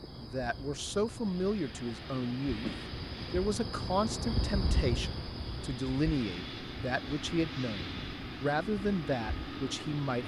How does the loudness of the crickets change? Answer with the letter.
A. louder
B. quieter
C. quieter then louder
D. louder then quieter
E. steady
D.